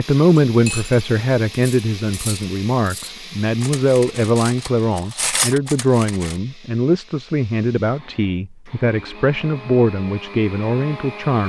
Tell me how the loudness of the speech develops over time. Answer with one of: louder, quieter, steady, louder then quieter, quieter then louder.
steady.